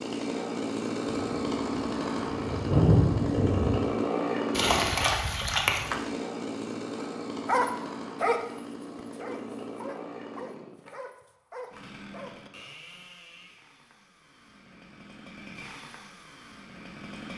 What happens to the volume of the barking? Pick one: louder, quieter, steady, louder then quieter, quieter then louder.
quieter.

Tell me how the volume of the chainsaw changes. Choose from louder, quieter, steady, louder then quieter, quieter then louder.
quieter.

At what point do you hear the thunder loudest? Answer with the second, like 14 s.
3 s.